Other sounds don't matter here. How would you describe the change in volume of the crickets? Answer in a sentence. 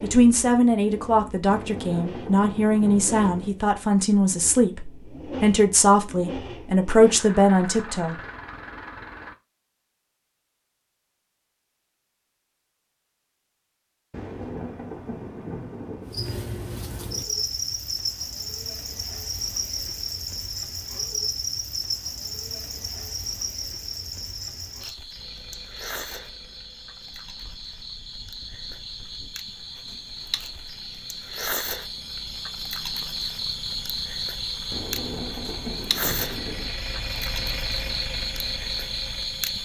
The loudness of the crickets goes down, then up.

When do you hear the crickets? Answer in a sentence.
The crickets can be heard from 16.1 to 39.6 s.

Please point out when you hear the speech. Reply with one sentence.
The speech can be heard from 0.0 to 8.2 s.